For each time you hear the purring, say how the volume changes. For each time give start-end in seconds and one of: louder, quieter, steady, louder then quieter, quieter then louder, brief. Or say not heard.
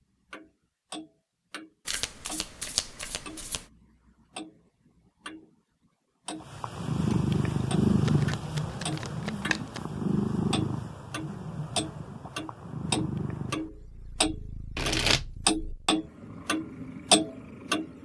6.4-18.0 quieter.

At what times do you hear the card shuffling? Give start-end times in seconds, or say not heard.
1.9-3.6, 8.1-9.8, 14.8-15.2.